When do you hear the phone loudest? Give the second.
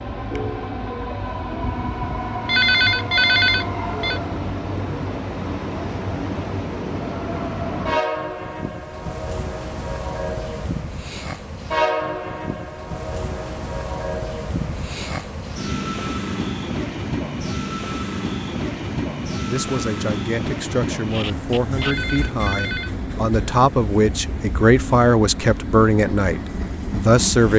3 s.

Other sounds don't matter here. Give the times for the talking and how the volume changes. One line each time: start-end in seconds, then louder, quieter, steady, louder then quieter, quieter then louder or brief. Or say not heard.
19.4-27.5 louder.